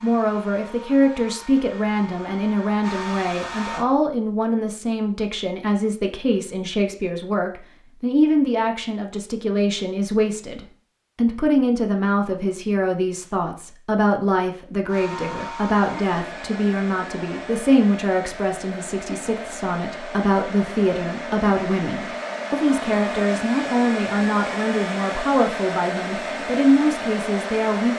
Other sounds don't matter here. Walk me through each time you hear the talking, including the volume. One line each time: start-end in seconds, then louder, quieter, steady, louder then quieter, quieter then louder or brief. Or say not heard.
0.0-27.9 steady.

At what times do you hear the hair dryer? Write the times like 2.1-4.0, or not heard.
0.0-3.9, 14.8-27.9.